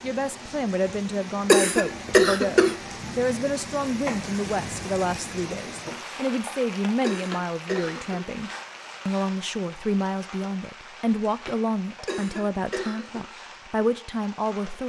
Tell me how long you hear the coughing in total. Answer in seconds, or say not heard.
4 s.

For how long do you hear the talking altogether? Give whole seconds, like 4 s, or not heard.
15 s.